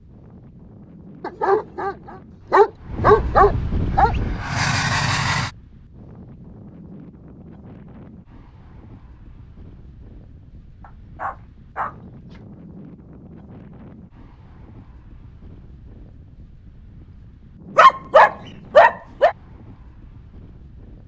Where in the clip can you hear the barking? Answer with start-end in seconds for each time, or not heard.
1.2-4.2, 10.8-11.9, 17.8-19.4.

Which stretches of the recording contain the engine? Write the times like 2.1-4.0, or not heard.
3.9-5.5.